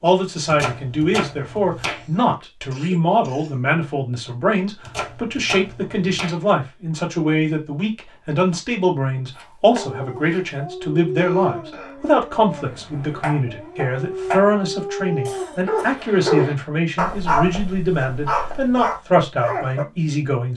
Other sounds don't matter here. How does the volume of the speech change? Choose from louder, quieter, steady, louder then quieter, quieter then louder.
steady.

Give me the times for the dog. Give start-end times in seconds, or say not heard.
9.8-19.9.